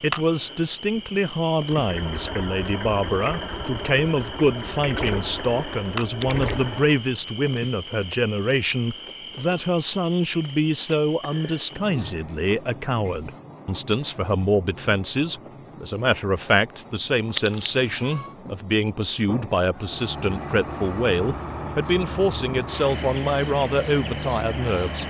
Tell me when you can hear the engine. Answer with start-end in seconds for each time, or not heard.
1.8-7.0, 19.8-25.0.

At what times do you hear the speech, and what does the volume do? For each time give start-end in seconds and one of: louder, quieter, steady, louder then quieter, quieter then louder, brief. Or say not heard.
0.0-25.0 steady.